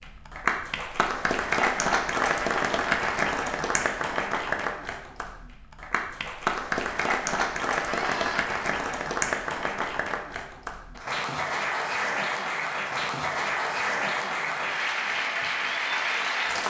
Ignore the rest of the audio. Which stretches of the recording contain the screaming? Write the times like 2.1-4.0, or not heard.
7.8-8.5.